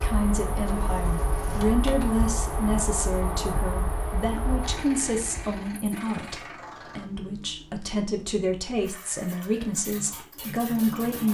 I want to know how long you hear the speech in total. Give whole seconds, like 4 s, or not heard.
11 s.